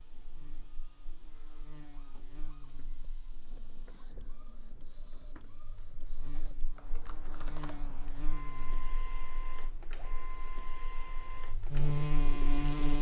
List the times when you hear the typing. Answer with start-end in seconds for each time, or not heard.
2.6-8.2.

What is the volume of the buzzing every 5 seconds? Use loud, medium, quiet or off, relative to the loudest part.
quiet, quiet, loud.